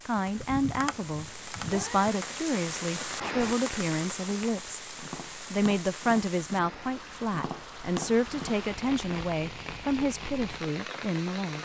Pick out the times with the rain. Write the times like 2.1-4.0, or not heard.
0.0-11.6.